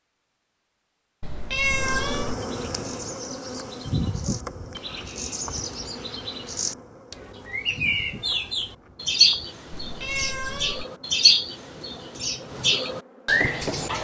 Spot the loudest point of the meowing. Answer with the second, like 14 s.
2 s.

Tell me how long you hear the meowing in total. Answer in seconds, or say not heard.
2 s.